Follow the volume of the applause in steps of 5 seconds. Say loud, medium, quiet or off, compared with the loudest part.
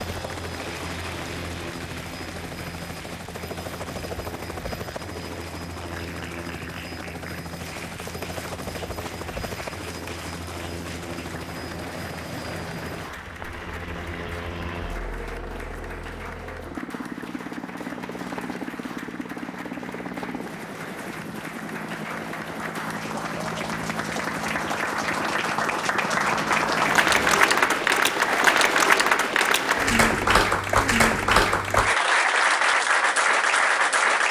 quiet, quiet, quiet, quiet, quiet, loud, loud.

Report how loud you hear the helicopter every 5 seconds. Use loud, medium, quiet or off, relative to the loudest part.
loud, loud, loud, loud, loud, loud, off.